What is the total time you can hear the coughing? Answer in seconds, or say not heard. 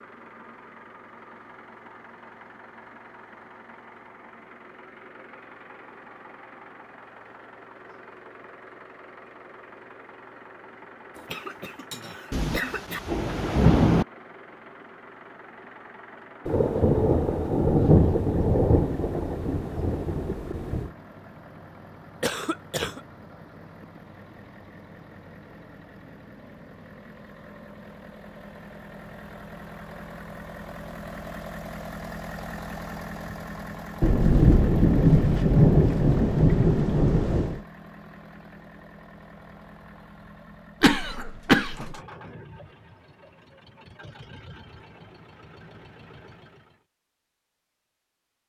4 s.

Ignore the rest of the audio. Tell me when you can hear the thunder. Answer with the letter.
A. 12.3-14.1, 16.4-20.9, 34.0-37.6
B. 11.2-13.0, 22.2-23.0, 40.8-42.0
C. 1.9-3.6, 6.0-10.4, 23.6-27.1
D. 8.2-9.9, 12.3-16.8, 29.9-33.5
A.